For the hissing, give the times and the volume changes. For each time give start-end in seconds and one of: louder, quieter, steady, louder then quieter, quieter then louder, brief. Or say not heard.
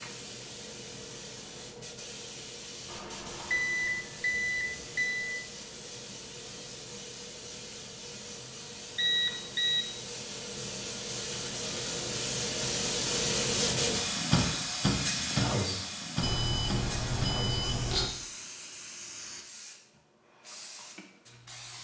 0.0-21.7 louder then quieter.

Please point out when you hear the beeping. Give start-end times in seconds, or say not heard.
2.9-5.3, 8.9-9.8, 16.2-18.1.